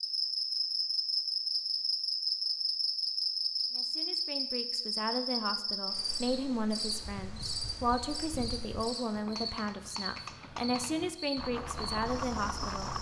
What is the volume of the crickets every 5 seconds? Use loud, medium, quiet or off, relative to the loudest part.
loud, medium, medium.